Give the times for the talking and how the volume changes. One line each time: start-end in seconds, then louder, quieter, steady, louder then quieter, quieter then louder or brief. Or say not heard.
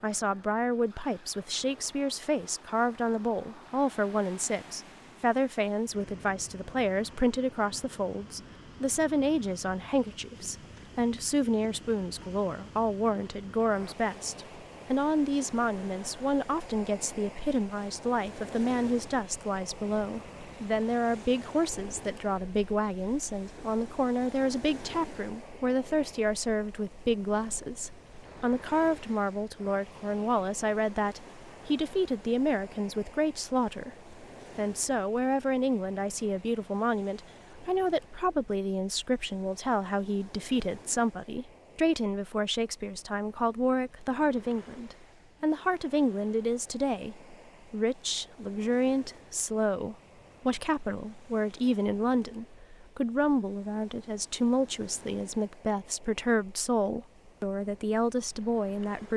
0.0-33.9 steady
34.5-59.1 steady.